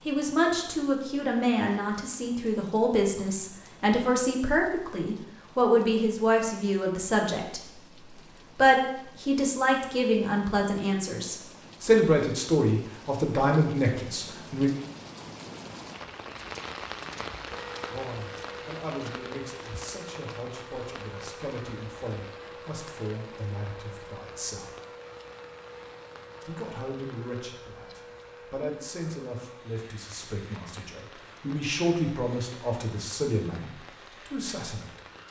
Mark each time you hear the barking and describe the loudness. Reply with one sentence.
You can't hear the barking here.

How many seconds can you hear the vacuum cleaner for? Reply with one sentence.
You can hear the vacuum cleaner for 18 seconds altogether.